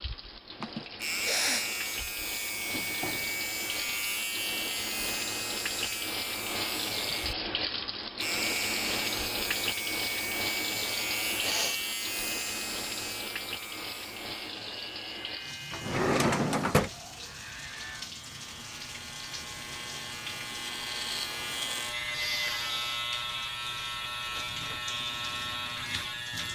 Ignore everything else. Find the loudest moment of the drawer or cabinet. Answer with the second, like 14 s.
16 s.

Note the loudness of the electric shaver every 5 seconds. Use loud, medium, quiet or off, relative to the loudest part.
loud, loud, loud, medium, loud, loud.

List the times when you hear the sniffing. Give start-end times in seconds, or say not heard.
0.6-1.7, 11.4-11.8, 22.1-23.1.